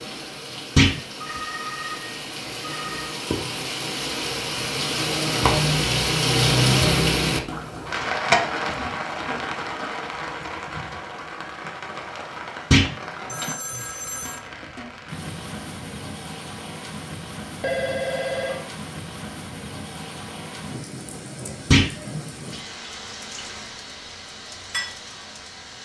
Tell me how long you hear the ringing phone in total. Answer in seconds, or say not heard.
4 s.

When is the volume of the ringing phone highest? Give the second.
18 s.